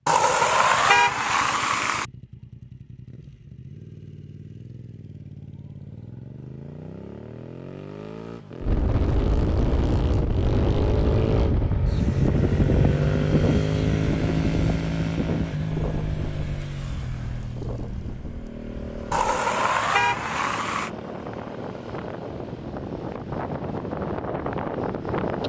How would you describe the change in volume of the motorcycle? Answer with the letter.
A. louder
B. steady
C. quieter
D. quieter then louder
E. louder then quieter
E.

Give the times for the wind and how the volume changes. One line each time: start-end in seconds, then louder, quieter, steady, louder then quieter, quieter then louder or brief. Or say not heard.
8.6-25.4 quieter then louder.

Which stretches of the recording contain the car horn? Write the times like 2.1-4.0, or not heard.
0.1-2.0, 19.1-20.9.